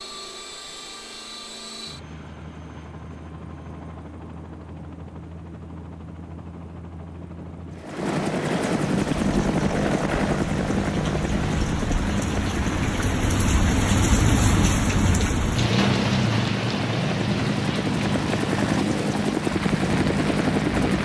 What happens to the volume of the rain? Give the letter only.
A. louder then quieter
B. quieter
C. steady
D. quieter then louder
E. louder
A.